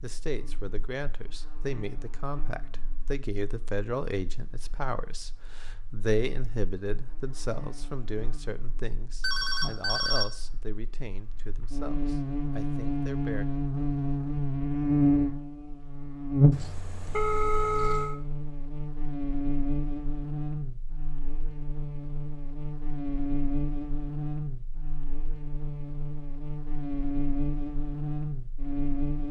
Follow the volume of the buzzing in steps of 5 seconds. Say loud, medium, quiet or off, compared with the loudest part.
quiet, quiet, loud, loud, medium, medium.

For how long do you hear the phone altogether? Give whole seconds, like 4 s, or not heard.
3 s.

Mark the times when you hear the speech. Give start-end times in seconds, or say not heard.
0.0-13.4.